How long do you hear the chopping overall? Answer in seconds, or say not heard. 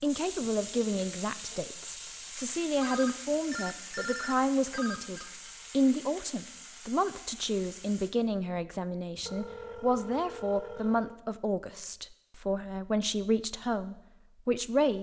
not heard.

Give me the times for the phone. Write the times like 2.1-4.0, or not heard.
2.8-5.3, 9.2-11.2.